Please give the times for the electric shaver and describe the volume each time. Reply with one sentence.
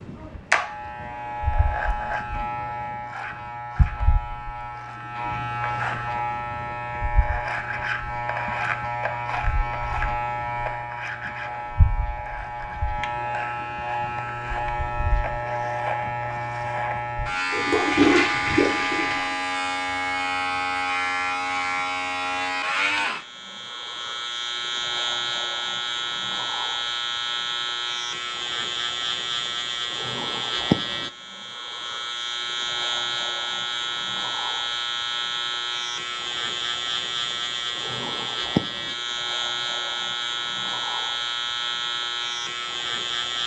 The electric shaver can be heard from 0.0 to 43.4 s, at a steady volume.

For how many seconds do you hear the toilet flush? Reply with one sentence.
The toilet flush can be heard for 2 seconds in total.